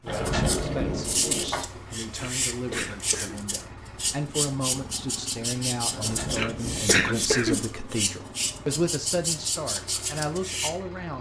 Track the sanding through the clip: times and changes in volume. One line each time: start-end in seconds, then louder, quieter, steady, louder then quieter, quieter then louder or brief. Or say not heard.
0.1-10.7 steady.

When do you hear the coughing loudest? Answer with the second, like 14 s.
7 s.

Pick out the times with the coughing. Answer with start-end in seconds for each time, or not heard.
2.1-3.4, 6.3-7.7.